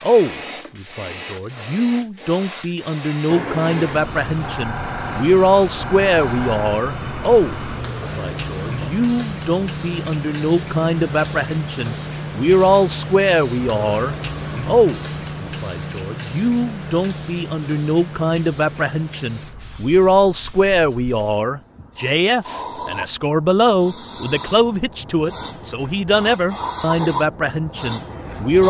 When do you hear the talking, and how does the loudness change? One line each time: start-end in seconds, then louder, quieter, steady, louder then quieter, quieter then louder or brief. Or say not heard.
0.0-28.6 steady.